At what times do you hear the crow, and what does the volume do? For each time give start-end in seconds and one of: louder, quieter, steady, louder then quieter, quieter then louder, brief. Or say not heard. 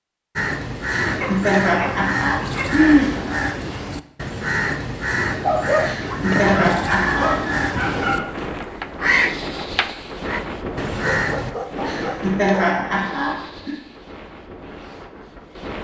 0.3-11.6 steady.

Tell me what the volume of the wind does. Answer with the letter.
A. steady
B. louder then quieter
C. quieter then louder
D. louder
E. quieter
E.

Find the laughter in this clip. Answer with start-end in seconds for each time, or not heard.
0.8-3.1, 5.8-7.3, 11.8-13.8.